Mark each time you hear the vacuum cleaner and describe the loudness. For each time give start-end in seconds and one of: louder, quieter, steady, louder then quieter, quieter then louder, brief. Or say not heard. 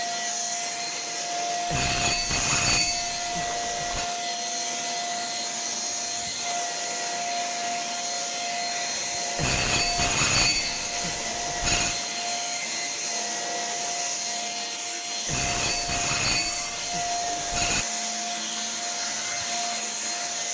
0.0-20.4 steady.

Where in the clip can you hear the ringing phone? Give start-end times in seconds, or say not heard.
1.7-4.0, 9.3-12.0, 15.2-17.9.